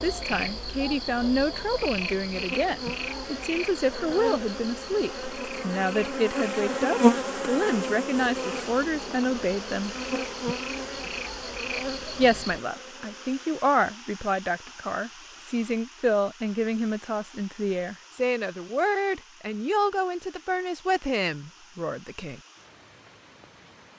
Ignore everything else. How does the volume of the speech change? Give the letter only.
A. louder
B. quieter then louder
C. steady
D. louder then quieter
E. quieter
C.